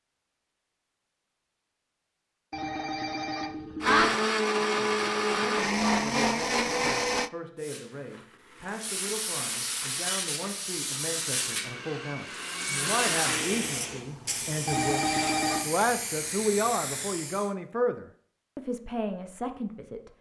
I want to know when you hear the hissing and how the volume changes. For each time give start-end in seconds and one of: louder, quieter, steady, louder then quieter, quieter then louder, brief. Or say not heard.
7.6-17.5 steady.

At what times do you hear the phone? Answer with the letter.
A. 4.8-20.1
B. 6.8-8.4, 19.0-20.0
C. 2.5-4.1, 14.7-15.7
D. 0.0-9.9
C.